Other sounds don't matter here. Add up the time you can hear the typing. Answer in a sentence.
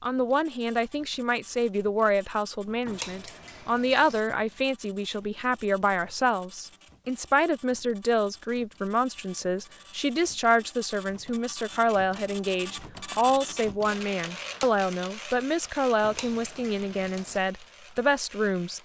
You can't hear the typing here.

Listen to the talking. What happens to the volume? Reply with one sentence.
The loudness of the talking stays about the same.